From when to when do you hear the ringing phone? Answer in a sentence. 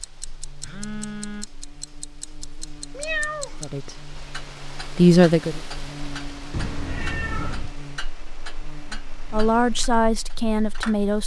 The ringing phone can be heard from 0.6 to 1.5 s.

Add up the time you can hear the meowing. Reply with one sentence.
The meowing can be heard for 2 seconds in total.